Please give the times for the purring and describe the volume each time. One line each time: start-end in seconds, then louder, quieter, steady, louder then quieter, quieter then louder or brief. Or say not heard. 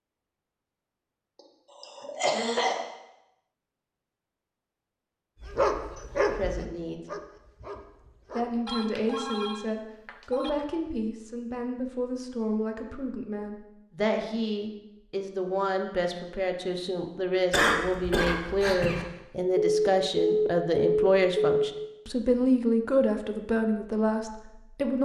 not heard.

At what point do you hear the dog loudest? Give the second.
6 s.